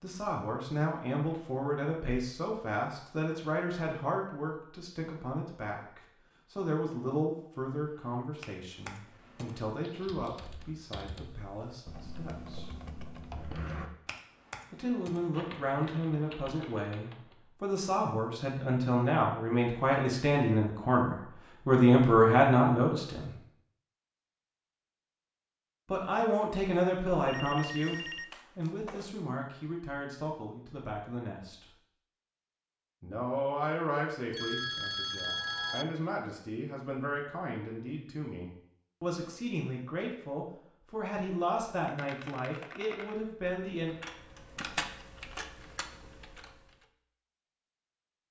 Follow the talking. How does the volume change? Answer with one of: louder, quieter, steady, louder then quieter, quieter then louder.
louder then quieter.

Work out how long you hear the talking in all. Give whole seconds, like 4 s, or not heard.
38 s.